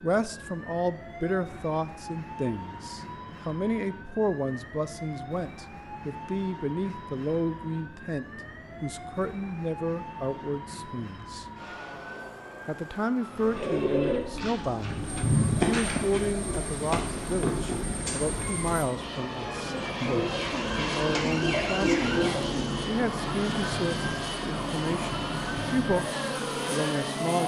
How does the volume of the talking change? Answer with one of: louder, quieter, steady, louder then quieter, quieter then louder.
steady.